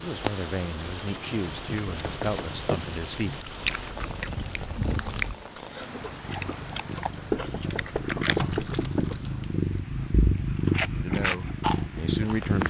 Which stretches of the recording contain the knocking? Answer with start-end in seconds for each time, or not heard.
1.9-2.5, 7.3-9.2.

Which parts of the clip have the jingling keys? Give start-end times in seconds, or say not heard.
0.8-2.9, 8.3-9.3.